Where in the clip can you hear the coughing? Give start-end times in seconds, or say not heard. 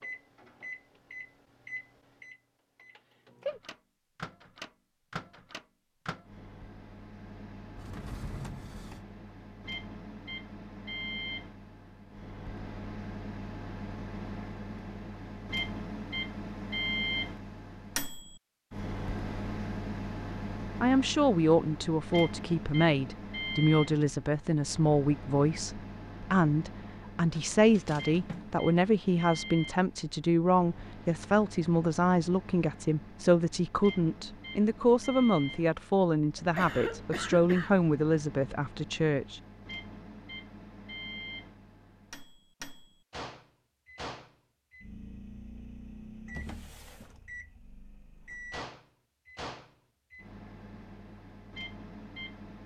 36.4-37.7.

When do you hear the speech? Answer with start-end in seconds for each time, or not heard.
20.8-39.4.